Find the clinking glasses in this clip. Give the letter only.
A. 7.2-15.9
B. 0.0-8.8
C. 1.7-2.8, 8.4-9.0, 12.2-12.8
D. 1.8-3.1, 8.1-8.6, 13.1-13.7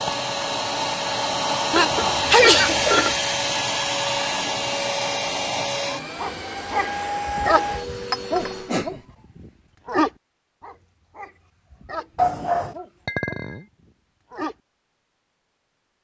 D.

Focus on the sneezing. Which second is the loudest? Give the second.
2 s.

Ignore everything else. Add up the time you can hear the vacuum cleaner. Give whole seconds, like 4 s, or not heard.
9 s.